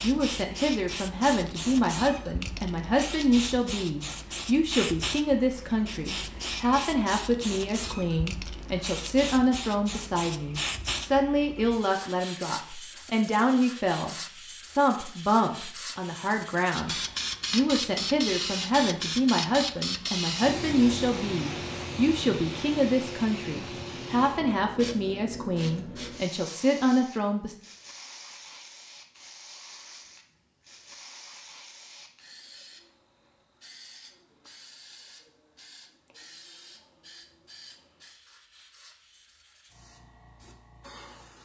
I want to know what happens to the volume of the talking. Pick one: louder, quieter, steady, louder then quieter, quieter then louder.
steady.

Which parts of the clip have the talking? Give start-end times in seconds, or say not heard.
0.0-14.2, 14.8-27.6.